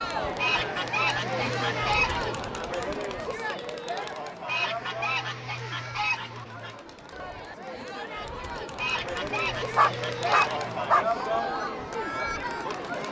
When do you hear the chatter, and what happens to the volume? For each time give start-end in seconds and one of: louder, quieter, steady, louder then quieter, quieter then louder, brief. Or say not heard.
0.0-13.0 quieter then louder.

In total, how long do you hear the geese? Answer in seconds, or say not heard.
7 s.